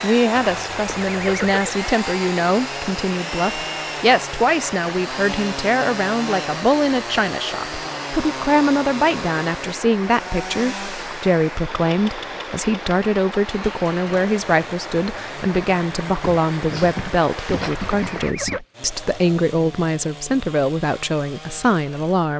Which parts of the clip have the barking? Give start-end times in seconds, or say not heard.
16.2-18.6.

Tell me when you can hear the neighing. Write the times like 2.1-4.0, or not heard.
0.3-1.8, 17.6-18.6.